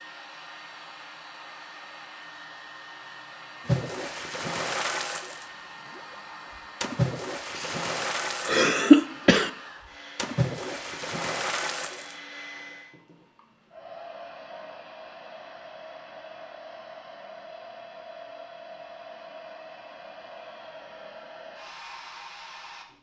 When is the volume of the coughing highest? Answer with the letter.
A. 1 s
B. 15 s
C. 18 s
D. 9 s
D.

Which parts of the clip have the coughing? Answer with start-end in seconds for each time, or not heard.
7.5-9.5.